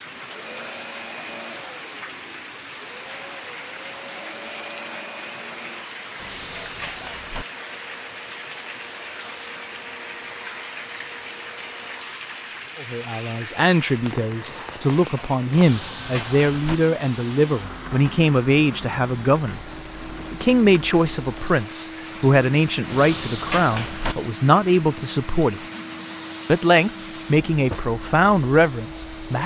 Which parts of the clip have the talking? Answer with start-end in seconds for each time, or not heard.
12.8-19.6, 20.3-25.6, 26.4-29.4.